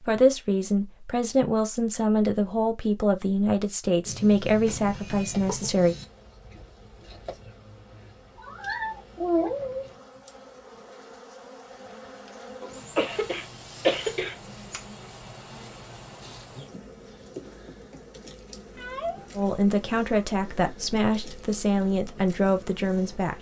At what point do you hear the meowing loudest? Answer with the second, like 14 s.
9 s.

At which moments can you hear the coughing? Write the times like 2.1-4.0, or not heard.
12.6-14.3.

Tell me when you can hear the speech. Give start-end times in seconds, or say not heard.
0.0-6.0, 19.4-23.3.